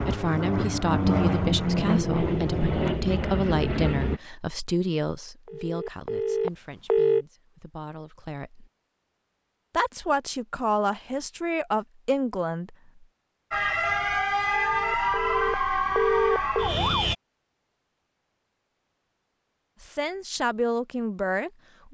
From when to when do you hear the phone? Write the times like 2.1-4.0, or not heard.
5.5-7.2, 14.6-16.7.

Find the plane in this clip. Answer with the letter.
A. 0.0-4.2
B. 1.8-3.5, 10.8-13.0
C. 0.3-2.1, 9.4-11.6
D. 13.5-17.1
A.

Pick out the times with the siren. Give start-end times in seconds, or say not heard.
13.5-17.1.